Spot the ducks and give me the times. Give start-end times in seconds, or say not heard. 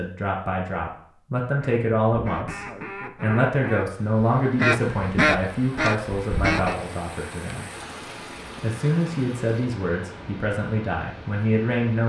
1.6-6.8.